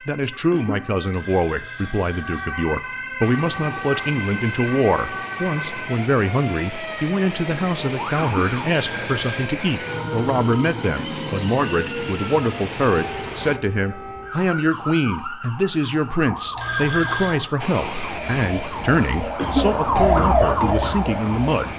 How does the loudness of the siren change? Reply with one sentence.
The volume of the siren goes up.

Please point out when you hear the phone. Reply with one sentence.
The phone can be heard from 1.1 to 2.5 s, from 8.7 to 9.5 s and from 16.6 to 17.4 s.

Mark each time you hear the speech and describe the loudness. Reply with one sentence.
You can hear the speech from 0.1 to 21.7 s, at a steady volume.